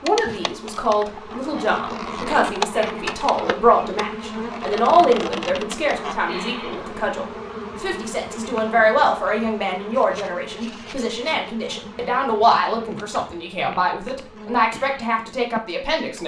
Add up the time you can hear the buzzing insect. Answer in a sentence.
You can hear the buzzing insect for 16 seconds altogether.